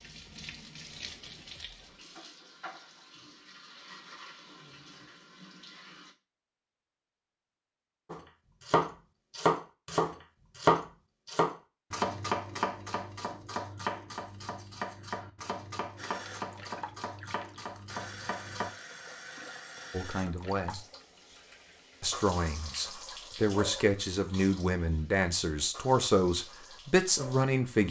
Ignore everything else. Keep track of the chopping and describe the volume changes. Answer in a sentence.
The volume of the chopping goes down.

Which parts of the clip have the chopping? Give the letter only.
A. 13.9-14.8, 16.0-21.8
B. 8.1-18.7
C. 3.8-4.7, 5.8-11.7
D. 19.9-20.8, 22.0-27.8
B.